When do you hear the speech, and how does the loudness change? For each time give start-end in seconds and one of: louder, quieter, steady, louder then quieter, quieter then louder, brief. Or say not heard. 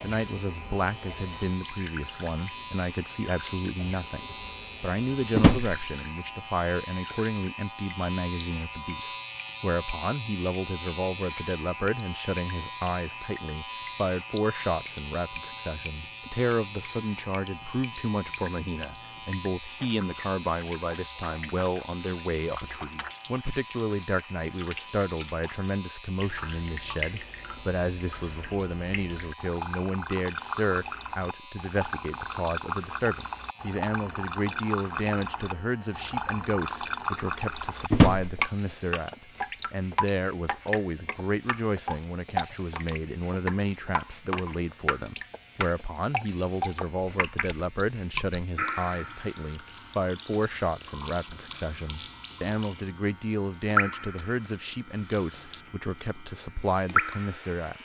0.0-57.8 steady.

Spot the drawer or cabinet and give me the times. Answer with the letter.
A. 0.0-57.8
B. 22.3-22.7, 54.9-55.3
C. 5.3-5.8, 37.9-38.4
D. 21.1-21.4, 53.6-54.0
C.